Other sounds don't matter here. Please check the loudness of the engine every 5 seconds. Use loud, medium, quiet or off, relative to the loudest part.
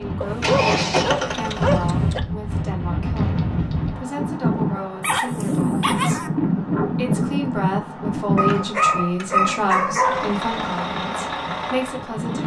loud, off, medium.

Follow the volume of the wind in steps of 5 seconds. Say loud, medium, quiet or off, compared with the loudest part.
loud, loud, medium.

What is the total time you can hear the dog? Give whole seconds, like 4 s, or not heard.
5 s.